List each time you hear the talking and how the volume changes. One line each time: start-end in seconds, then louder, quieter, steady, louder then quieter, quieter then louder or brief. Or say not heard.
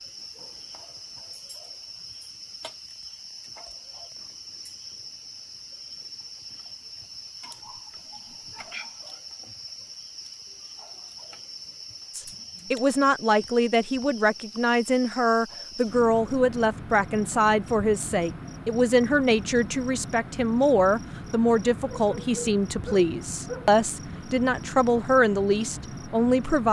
12.2-26.6 steady.